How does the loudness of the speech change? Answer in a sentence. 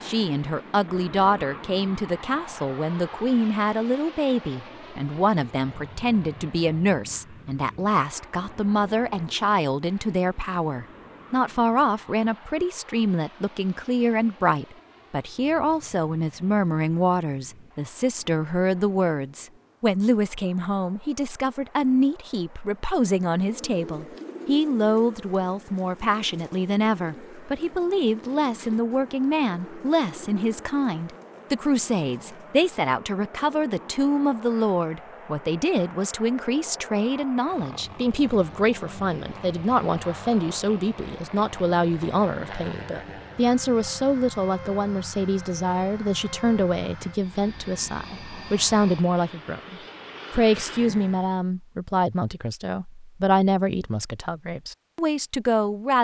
The loudness of the speech stays about the same.